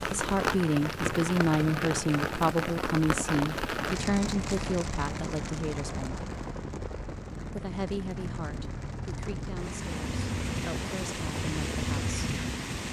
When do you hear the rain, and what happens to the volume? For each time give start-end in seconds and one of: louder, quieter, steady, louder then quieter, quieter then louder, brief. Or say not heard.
0.0-12.8 quieter then louder.